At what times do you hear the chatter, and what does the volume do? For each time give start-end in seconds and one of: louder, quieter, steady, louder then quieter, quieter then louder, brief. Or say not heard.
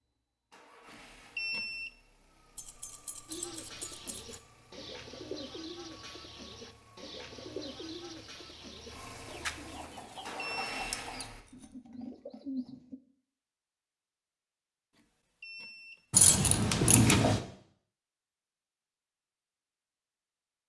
not heard.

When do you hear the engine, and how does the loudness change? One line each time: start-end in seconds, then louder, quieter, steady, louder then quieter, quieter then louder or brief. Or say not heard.
0.0-11.4 louder.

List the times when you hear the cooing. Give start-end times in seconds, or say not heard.
3.2-13.0.